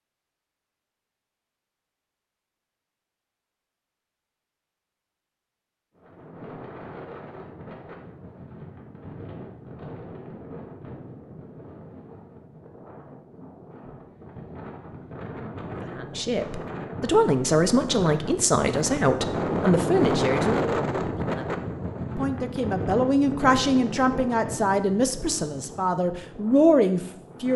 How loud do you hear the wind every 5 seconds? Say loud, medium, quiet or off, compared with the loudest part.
off, quiet, quiet, loud, loud, quiet.